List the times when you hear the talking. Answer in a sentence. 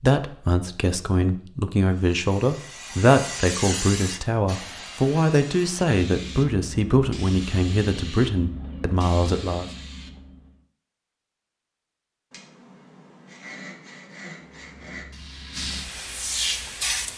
The talking can be heard from 0.0 to 9.7 s.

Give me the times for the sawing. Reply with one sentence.
You can hear the sawing from 12.3 to 15.1 s.